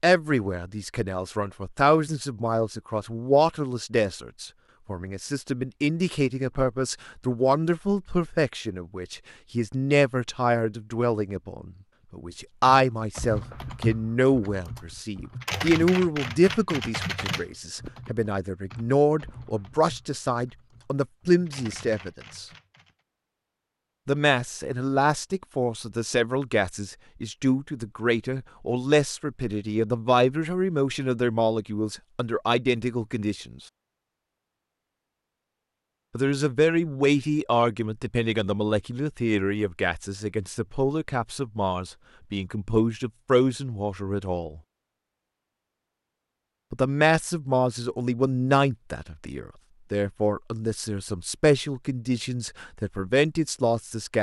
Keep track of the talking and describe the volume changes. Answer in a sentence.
The loudness of the talking stays about the same.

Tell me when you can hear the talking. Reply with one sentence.
The talking can be heard from 0.0 to 22.4 s, from 24.1 to 33.5 s, from 36.1 to 44.6 s and from 46.7 to 54.1 s.